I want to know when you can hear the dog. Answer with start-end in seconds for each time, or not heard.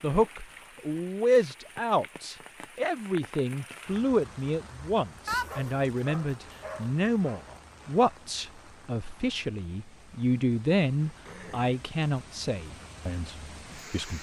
5.2-7.4.